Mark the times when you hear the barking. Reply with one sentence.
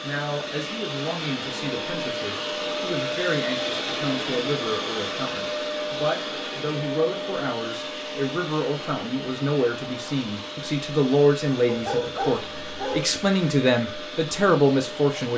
You can hear the barking from 11.7 to 13.1 s.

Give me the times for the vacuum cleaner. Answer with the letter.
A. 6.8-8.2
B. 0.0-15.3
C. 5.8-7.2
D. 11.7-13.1
B.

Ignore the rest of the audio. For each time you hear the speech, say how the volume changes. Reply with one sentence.
You can hear the speech from 0.0 to 15.3 s, getting louder.